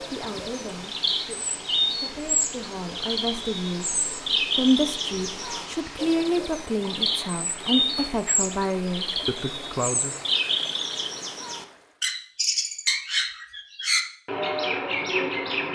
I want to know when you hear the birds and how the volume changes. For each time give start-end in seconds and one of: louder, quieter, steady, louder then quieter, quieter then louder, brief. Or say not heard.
0.0-15.7 steady.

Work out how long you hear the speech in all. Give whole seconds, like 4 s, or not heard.
10 s.